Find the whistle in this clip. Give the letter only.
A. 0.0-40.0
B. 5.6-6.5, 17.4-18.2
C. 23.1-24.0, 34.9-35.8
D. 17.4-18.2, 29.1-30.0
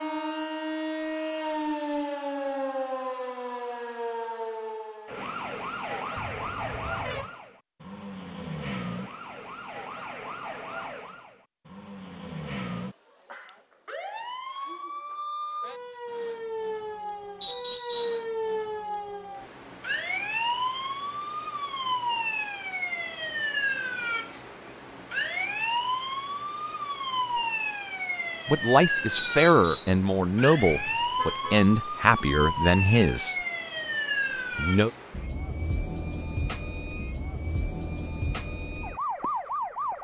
D.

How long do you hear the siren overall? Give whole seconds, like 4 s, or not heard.
40 s.